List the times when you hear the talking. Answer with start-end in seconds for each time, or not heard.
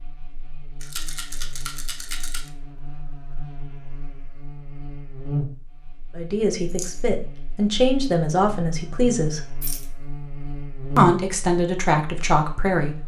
6.2-9.4, 10.9-13.0.